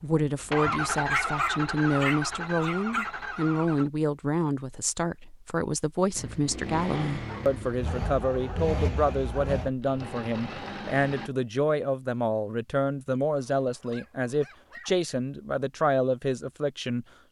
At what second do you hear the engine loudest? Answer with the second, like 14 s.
1 s.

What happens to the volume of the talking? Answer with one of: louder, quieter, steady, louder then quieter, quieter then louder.
steady.